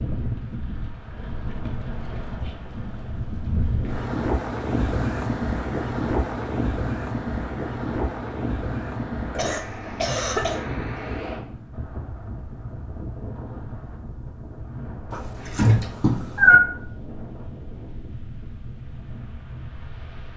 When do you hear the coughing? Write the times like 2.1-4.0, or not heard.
9.3-10.7.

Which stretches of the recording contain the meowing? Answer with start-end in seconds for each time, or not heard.
15.1-16.6.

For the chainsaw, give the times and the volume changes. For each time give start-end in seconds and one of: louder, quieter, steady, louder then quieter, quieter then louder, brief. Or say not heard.
not heard.